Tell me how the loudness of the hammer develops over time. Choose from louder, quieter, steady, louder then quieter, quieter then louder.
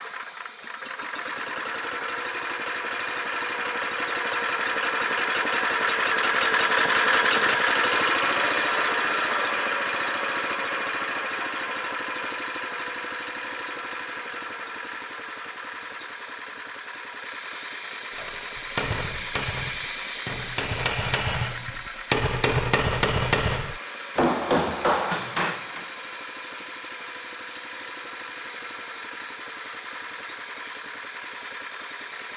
louder.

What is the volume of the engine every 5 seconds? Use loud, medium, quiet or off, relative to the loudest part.
medium, loud, medium, quiet, quiet, quiet, quiet.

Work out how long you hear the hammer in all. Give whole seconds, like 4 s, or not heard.
8 s.